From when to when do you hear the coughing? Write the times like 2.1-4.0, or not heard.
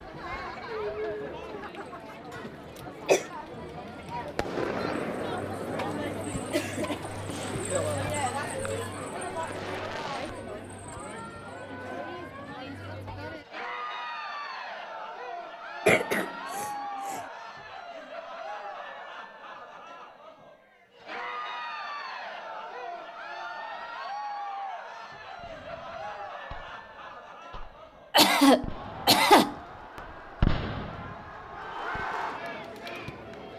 2.5-3.2, 15.8-17.2, 28.1-29.6.